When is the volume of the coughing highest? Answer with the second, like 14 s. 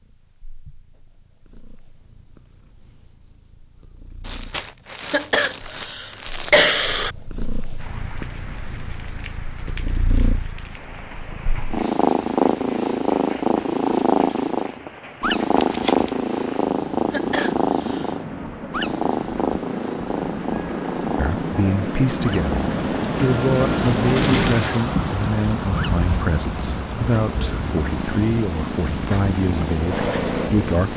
7 s.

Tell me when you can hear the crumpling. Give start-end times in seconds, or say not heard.
4.2-6.7, 15.6-16.1, 24.1-24.9.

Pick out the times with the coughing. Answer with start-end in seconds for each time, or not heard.
5.1-7.2, 17.1-18.1.